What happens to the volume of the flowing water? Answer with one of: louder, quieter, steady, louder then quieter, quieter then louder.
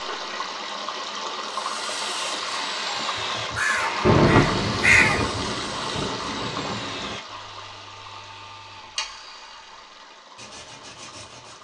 quieter.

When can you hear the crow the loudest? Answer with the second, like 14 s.
5 s.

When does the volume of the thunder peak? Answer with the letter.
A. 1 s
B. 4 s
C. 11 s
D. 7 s
B.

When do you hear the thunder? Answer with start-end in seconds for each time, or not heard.
4.0-7.2.